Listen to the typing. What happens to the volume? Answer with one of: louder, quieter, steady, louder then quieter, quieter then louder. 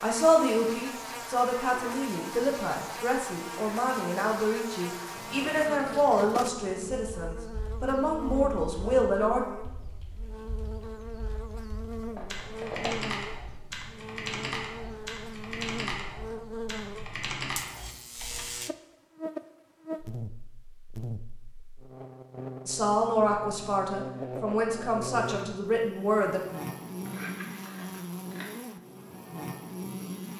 louder.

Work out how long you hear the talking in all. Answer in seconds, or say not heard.
13 s.